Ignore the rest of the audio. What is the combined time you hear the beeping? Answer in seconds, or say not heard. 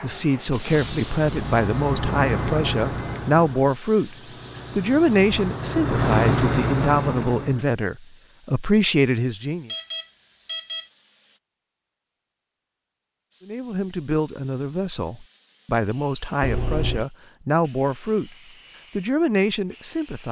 3 s.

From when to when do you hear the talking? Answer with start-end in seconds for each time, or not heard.
0.0-4.2, 4.8-9.7, 13.4-18.4, 18.9-20.2.